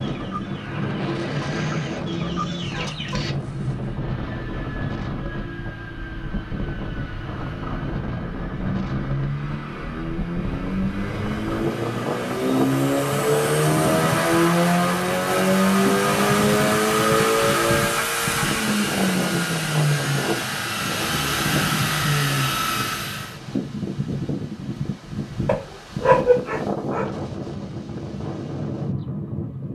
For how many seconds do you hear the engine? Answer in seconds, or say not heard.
23 s.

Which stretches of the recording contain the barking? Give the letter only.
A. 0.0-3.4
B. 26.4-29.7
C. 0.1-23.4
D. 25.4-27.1
D.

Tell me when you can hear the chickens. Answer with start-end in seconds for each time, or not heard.
0.0-3.4.